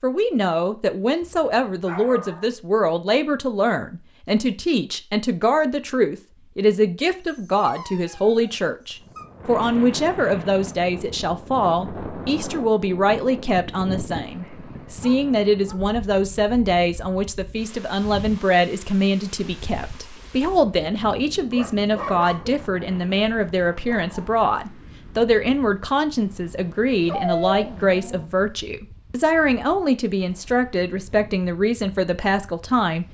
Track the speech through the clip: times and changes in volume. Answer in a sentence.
You can hear the speech from 0.0 to 33.0 s, at a steady volume.